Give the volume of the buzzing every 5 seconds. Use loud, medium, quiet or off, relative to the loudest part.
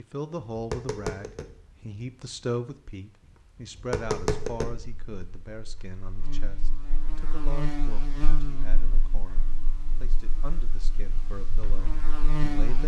off, loud, loud.